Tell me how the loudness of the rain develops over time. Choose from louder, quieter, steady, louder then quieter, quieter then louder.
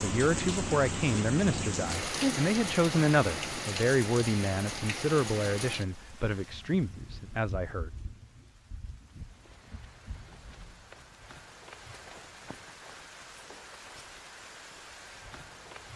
quieter.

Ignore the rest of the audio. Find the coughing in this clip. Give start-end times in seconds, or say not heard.
not heard.